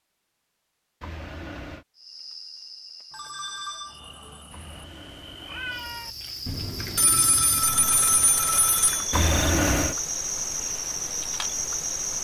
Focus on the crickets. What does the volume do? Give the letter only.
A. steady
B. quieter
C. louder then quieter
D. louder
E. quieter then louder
D.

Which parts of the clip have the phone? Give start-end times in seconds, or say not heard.
3.1-4.5, 6.5-9.1.